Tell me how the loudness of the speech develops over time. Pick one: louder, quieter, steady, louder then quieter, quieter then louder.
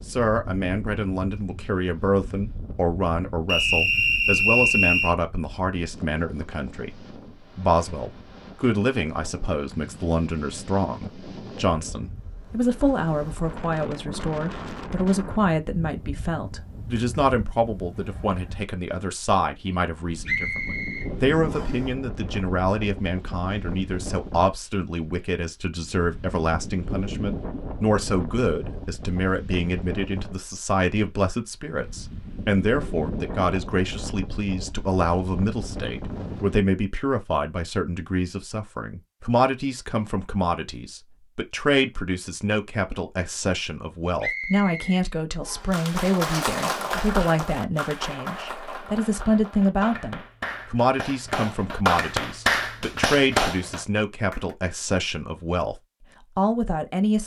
steady.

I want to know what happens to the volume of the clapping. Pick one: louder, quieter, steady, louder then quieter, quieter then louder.
quieter then louder.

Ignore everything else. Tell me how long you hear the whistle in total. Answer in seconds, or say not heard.
5 s.